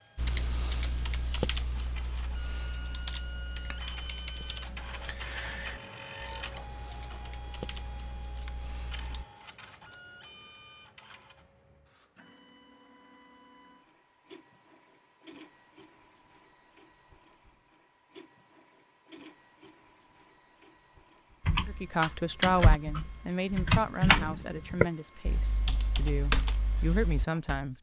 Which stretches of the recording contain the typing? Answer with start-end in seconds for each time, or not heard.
0.1-9.2, 21.4-27.6.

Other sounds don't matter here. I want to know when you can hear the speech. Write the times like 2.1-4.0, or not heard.
21.6-27.7.